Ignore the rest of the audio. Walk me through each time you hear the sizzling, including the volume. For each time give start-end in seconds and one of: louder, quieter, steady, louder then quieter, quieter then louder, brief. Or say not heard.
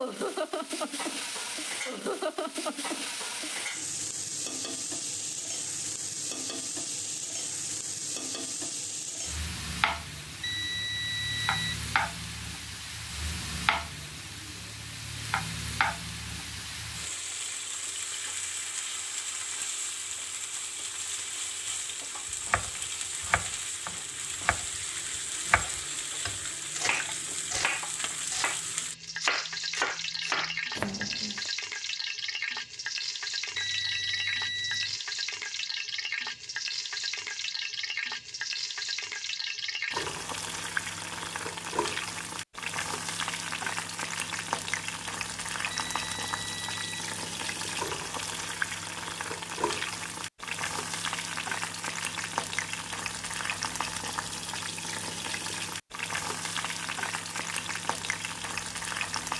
0.0-59.3 steady.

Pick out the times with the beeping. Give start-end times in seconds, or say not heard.
10.4-11.7, 33.5-35.0, 45.7-47.0.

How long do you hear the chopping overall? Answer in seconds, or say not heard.
9 s.